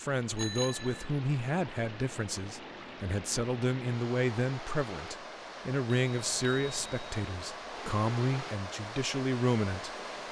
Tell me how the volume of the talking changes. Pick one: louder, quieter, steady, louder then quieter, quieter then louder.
steady.